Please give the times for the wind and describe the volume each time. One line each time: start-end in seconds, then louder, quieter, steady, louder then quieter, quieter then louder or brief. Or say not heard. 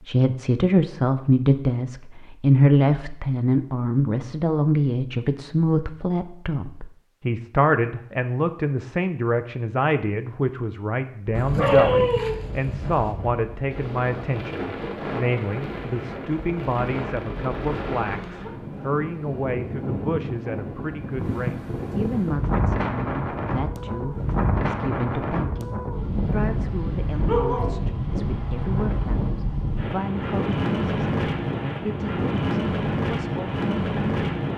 11.4-34.5 louder.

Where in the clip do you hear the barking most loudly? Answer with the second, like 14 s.
12 s.